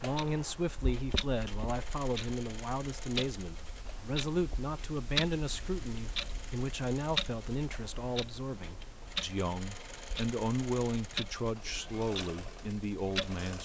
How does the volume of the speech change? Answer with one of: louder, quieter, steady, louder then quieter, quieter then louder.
steady.